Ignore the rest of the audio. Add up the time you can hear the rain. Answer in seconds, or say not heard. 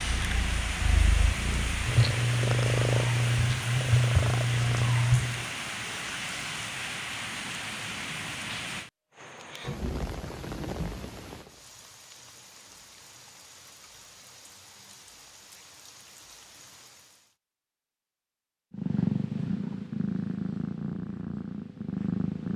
17 s.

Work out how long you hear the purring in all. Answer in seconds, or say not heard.
9 s.